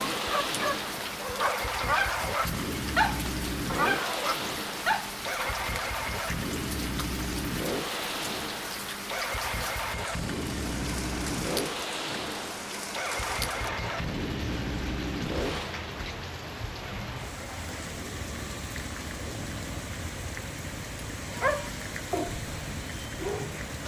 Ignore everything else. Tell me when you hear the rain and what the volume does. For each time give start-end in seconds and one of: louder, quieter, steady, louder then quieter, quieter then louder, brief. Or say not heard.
0.0-23.8 steady.